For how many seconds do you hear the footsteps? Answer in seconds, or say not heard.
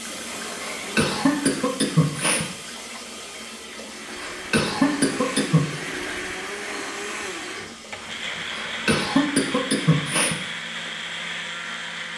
not heard.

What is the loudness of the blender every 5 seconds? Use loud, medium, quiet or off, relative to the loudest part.
medium, loud, loud.